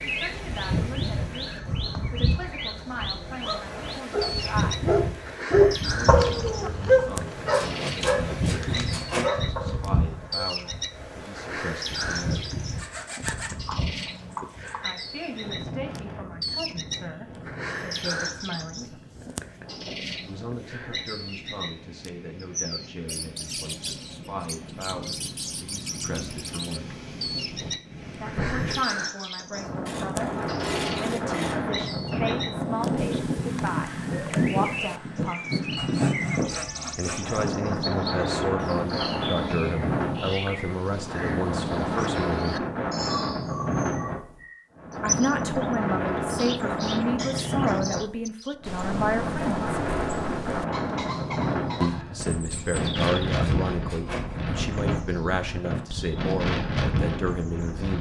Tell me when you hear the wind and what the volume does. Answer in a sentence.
The wind can be heard from 0.0 to 57.9 s, getting quieter then louder.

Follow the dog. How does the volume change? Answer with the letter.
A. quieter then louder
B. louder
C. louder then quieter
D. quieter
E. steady
C.